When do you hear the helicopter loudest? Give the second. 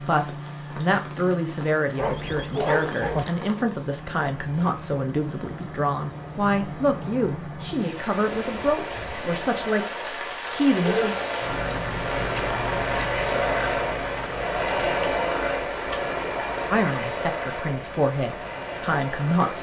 15 s.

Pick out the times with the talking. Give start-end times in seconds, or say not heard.
0.0-11.2, 16.7-19.5.